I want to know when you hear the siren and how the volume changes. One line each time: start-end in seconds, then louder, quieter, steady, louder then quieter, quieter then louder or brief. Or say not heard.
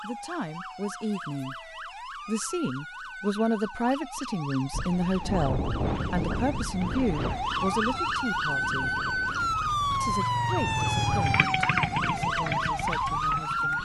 0.0-13.7 louder.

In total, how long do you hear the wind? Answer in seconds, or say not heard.
9 s.